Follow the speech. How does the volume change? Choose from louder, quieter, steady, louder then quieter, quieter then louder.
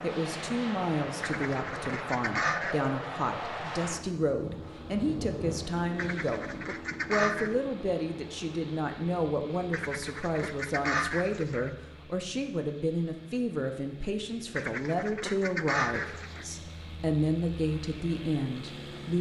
steady.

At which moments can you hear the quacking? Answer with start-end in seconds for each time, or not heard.
1.2-2.9, 6.0-7.5, 9.7-11.7, 14.6-16.4.